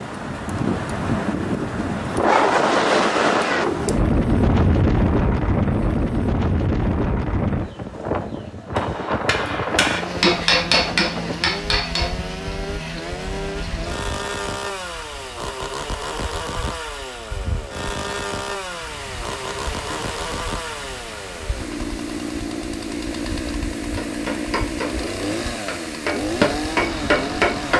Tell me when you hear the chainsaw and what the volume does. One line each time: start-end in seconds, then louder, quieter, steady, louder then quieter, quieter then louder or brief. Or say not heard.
9.8-27.7 steady.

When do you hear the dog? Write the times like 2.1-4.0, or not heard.
not heard.